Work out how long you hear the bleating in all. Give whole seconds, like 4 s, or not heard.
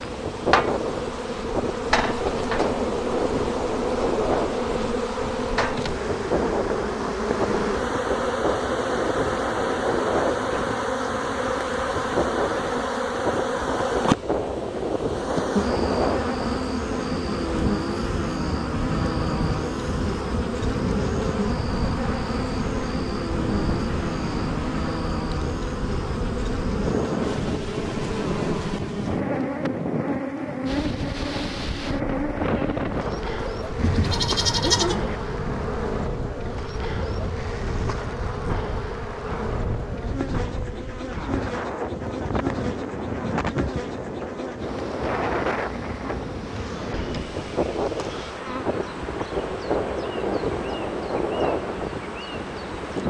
2 s.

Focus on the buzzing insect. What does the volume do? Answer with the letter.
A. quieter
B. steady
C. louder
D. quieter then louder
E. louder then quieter
A.